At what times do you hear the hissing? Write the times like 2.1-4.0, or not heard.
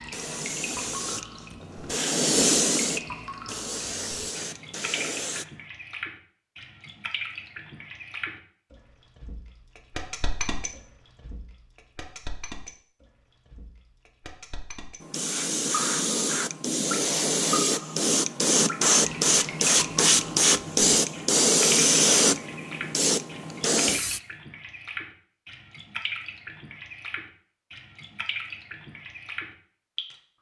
0.0-5.5, 15.0-24.2.